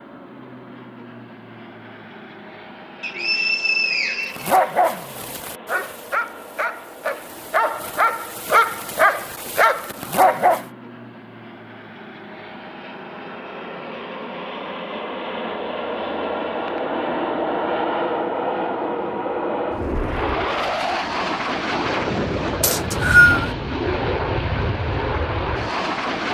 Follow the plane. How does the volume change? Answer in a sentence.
The volume of the plane goes up.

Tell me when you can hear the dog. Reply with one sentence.
The dog can be heard from 4.3 to 10.7 s.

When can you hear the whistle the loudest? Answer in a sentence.
The loudest moment of the whistle is at 23 seconds.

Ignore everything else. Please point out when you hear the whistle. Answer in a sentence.
The whistle can be heard from 3.0 to 4.5 s and from 22.6 to 23.5 s.